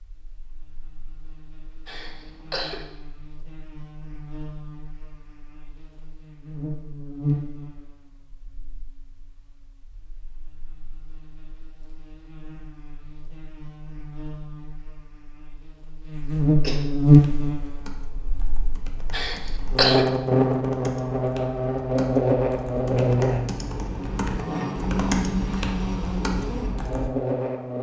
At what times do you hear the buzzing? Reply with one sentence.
The buzzing can be heard from 0.1 to 27.7 s.